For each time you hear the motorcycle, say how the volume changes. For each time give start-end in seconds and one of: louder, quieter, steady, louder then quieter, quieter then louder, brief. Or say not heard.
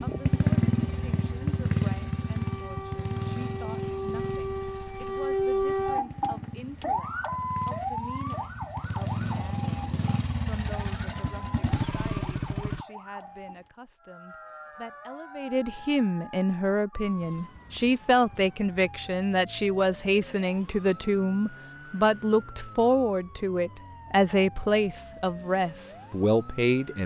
0.0-12.8 quieter then louder.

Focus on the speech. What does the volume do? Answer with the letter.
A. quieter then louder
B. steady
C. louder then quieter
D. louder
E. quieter
D.